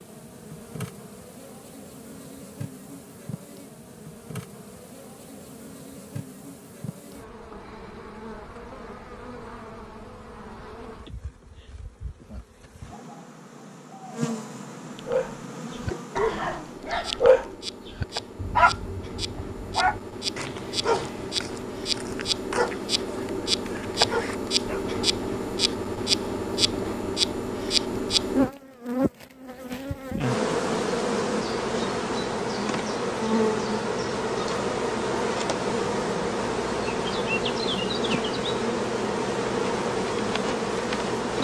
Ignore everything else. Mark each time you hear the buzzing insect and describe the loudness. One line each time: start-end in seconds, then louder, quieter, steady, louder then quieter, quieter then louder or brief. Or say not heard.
0.0-41.4 louder.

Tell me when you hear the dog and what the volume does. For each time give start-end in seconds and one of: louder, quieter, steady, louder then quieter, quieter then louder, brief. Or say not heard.
14.9-24.9 louder then quieter.